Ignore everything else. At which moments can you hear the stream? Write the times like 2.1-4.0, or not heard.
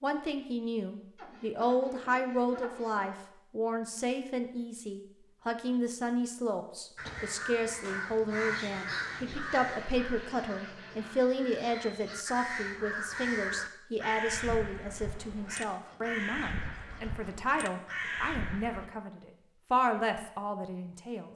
not heard.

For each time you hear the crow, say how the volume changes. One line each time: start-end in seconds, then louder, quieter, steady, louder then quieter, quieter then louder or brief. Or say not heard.
7.0-18.9 quieter then louder.